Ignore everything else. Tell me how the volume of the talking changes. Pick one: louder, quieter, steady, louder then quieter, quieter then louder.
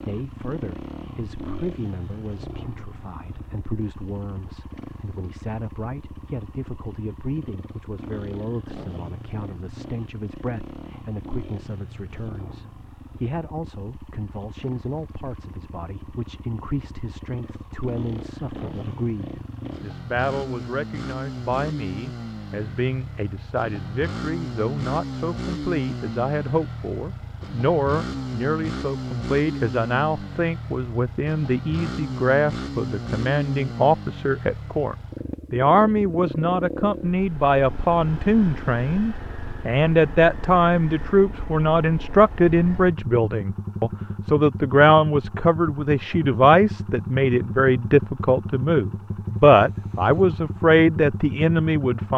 louder.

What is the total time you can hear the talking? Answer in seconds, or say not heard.
52 s.